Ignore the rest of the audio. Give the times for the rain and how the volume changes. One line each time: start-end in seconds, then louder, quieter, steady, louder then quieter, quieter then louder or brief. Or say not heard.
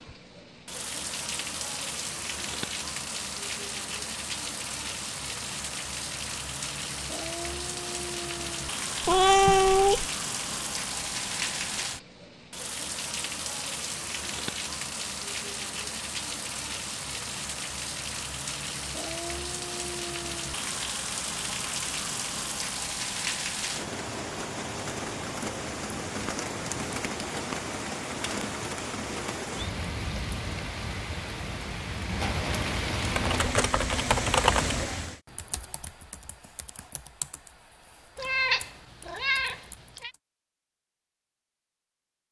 0.0-35.2 steady.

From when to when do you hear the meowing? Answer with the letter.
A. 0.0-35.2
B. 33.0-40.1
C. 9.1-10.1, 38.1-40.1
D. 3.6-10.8
C.